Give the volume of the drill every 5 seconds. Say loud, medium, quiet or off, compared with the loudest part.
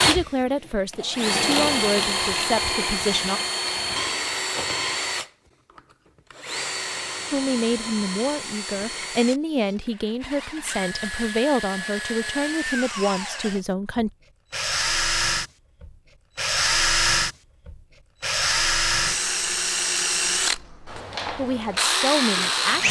loud, medium, medium, loud, loud.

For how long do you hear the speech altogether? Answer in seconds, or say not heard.
12 s.